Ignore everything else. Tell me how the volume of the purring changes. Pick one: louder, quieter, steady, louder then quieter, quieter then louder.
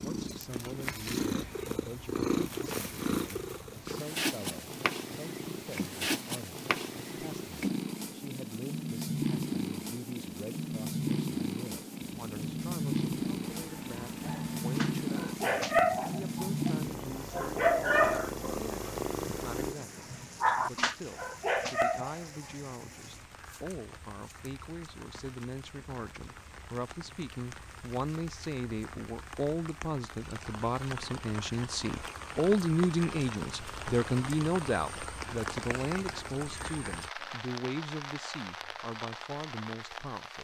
steady.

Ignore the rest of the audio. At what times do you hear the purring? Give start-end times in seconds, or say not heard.
0.0-19.8.